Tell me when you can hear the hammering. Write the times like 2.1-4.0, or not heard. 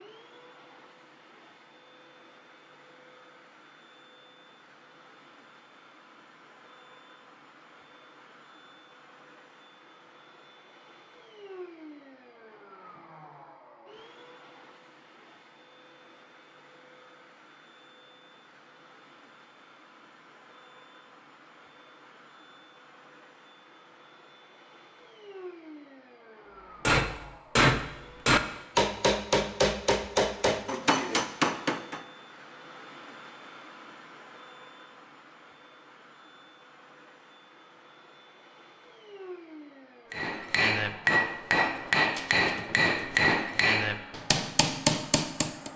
26.9-32.0, 40.1-45.7.